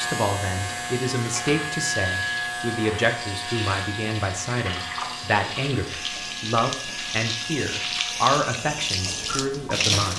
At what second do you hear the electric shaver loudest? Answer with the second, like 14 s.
2 s.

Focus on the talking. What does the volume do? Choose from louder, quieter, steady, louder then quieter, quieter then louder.
steady.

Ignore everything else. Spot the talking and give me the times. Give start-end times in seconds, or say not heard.
0.0-10.1.